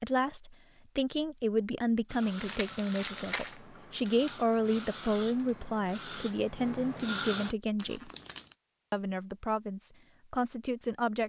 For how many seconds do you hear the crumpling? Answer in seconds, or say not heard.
2 s.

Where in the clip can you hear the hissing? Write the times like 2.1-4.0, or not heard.
2.0-7.5.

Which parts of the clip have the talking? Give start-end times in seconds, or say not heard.
0.0-8.1, 8.9-11.2.